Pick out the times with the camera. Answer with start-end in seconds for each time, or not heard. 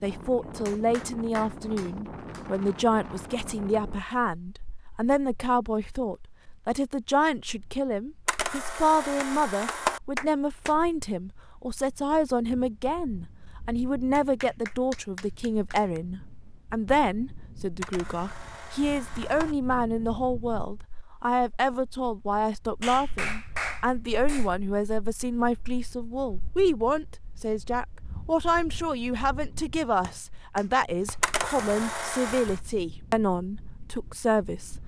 8.2-10.0, 17.8-19.6, 31.2-32.6.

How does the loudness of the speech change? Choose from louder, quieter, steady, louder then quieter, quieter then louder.
steady.